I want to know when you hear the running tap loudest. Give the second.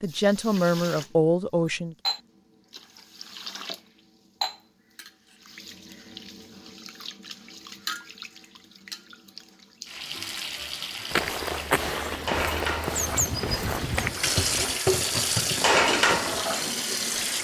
16 s.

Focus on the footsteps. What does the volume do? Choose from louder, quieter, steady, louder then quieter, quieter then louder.
quieter.